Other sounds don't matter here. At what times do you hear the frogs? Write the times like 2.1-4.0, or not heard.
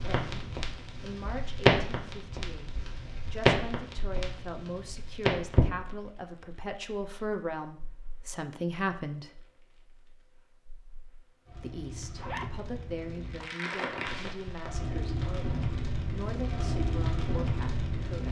not heard.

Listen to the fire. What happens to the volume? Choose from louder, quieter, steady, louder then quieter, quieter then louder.
quieter then louder.